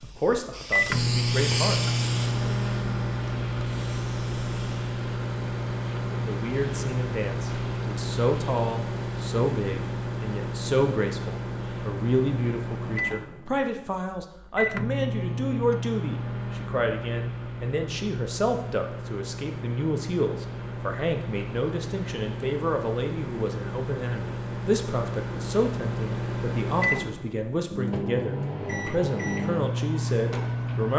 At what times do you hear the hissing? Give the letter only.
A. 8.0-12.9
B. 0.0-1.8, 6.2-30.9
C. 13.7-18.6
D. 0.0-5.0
D.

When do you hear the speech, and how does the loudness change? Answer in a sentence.
You can hear the speech briefly from 0.0 to 1.8 s; and from 6.2 to 30.9 s, at a steady volume.